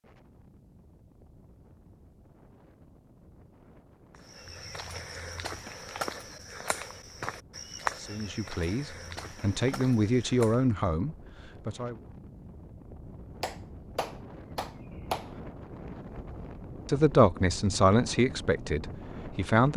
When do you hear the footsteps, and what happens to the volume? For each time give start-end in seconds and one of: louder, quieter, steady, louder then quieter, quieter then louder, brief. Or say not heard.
4.1-10.7 louder then quieter.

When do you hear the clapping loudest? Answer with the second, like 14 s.
15 s.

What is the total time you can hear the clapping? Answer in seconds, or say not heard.
2 s.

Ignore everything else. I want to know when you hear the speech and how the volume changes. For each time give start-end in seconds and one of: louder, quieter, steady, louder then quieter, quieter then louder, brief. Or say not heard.
8.0-12.0 louder then quieter
16.9-19.7 brief.